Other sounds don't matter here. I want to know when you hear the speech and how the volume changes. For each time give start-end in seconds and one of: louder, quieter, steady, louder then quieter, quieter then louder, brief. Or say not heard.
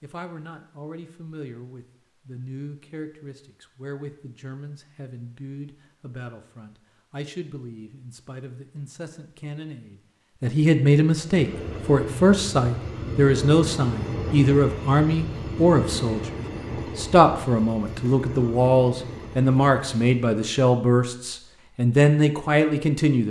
0.0-23.2 louder.